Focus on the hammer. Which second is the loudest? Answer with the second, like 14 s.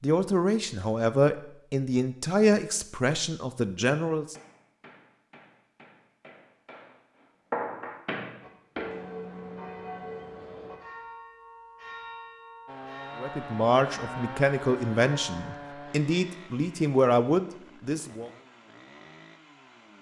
8 s.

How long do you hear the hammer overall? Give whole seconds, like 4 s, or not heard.
5 s.